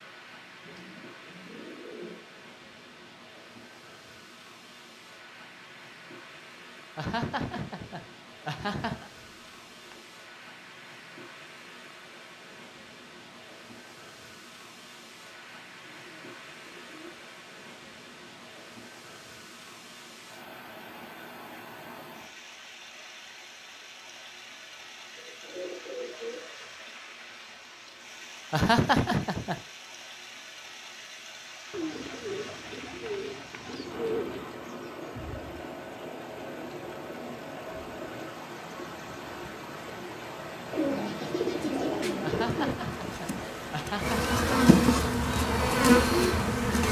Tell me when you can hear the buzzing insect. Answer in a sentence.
You can hear the buzzing insect from 42.9 to 46.8 s.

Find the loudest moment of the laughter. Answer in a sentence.
The volume of the laughter peaks at 29 seconds.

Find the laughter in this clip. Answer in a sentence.
The laughter can be heard from 7.0 to 9.1 s, from 28.5 to 29.6 s and from 42.2 to 44.4 s.